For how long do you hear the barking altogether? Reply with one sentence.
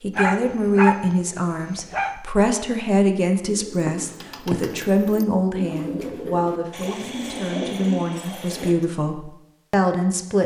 You can hear the barking for 2 seconds altogether.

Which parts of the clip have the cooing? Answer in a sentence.
The cooing can be heard from 3.5 to 8.9 s.